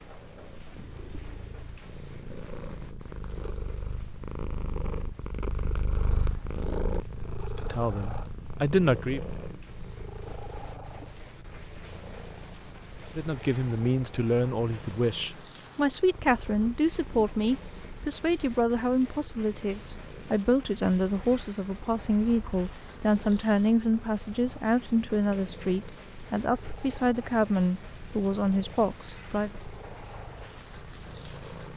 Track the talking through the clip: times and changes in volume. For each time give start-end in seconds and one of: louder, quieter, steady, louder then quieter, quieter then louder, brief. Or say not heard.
7.5-9.2 brief
13.2-29.5 steady.